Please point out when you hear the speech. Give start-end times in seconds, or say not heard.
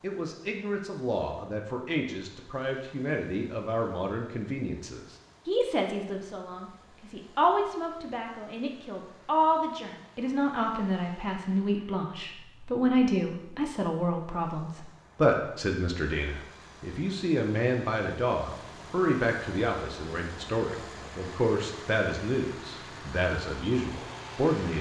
0.0-24.7.